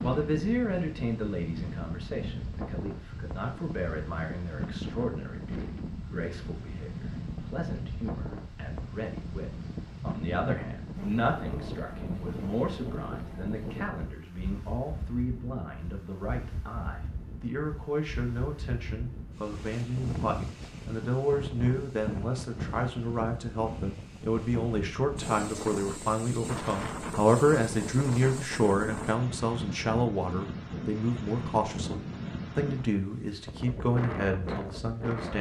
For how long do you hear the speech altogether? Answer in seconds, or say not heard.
35 s.